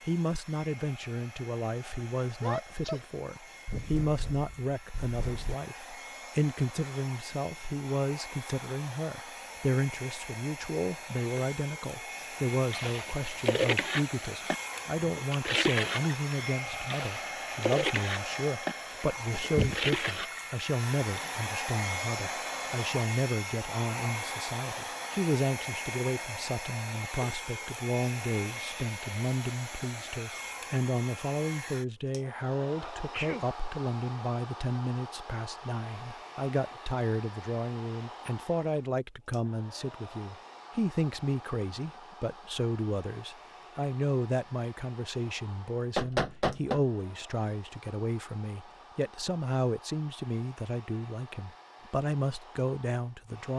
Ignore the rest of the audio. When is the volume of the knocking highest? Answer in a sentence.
The loudest moment of the knocking is at 46 seconds.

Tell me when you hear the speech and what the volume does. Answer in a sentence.
You can hear the speech from 0.0 to 53.5 s, at a steady volume.